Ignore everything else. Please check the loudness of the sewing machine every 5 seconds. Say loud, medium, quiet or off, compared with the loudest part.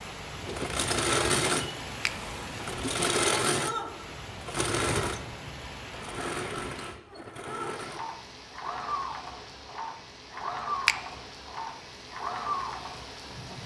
loud, medium, medium.